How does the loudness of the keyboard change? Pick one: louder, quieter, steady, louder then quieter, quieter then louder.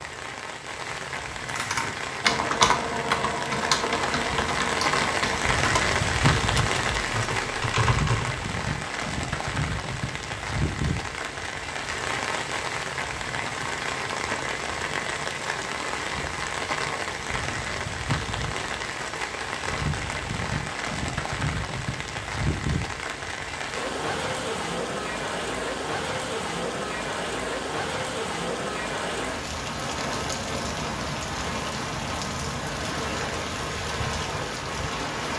quieter.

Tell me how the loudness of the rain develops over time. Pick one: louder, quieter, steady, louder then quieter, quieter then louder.
steady.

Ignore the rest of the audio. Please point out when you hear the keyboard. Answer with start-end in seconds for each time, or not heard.
1.4-8.5.